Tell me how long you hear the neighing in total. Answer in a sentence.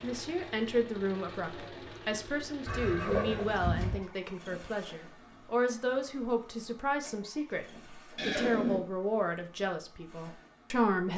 You can hear the neighing for 2 seconds altogether.